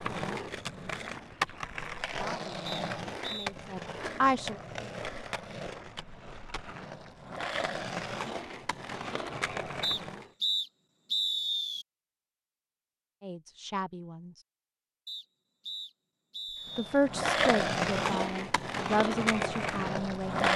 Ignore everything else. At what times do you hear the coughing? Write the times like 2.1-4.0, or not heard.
not heard.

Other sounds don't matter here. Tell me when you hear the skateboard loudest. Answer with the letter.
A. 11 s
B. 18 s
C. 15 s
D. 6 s
B.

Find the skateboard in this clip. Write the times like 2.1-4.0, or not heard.
0.0-10.3, 16.7-20.5.